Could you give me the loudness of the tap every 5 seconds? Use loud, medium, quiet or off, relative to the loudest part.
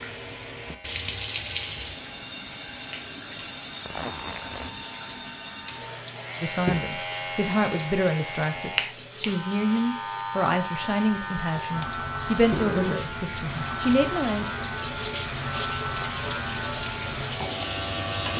loud, medium, medium, loud.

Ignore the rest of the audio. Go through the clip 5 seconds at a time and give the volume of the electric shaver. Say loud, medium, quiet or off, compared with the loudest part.
quiet, loud, loud, loud.